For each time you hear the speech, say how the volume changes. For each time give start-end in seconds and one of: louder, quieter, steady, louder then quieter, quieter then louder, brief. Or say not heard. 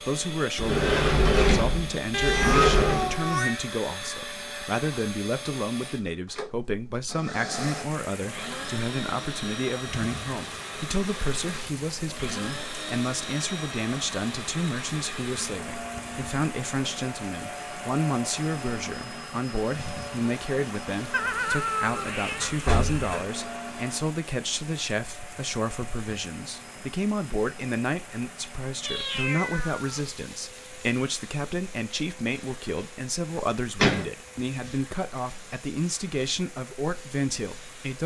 0.0-38.0 steady.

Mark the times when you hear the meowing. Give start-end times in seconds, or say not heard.
2.1-3.6, 21.1-22.6, 28.8-30.1.